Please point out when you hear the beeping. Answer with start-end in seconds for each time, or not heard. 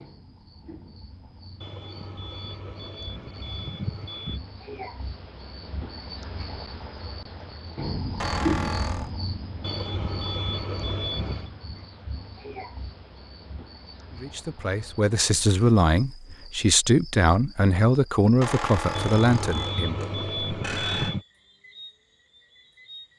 1.6-4.4, 9.6-11.5, 18.9-21.2.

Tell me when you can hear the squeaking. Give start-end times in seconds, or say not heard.
8.2-9.1, 18.4-21.1.